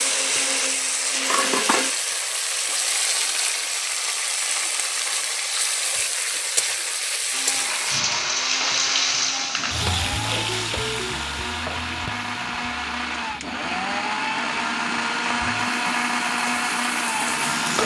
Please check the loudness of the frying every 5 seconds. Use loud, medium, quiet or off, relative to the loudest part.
loud, loud, medium, medium.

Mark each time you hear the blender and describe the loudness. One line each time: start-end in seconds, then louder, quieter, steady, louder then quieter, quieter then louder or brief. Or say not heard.
0.0-1.9 brief
7.3-17.8 louder.